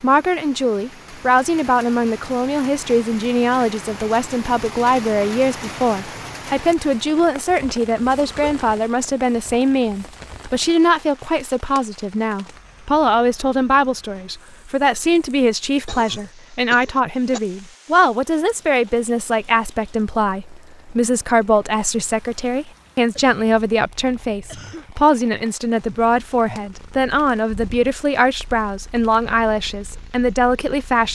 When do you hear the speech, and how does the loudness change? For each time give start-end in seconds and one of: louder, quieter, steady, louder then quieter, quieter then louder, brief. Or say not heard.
0.0-31.1 steady.